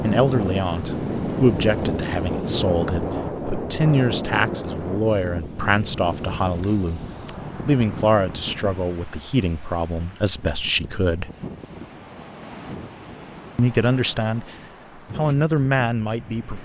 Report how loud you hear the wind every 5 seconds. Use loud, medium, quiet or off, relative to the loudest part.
loud, medium, quiet, quiet.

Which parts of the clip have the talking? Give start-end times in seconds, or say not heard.
0.0-7.0, 7.7-11.3, 13.6-14.6, 15.2-16.6.